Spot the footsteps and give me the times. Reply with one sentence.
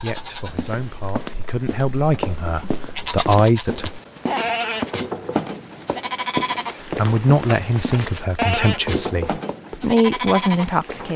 You can hear the footsteps from 0.0 to 9.7 s.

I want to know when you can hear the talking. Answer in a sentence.
The talking can be heard from 0.0 to 3.9 s and from 6.8 to 11.1 s.